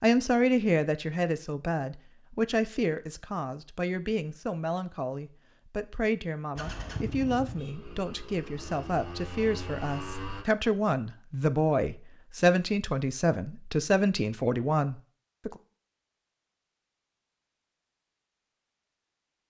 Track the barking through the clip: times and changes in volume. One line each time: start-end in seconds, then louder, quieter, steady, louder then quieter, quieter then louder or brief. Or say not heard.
not heard.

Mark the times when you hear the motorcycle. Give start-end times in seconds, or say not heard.
6.5-10.4.